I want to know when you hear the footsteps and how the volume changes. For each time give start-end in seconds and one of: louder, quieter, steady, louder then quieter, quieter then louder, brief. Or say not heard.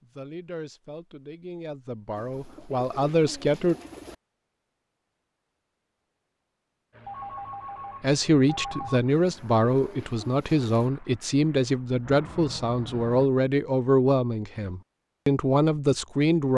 not heard.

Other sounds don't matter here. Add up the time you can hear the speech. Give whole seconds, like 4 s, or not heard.
12 s.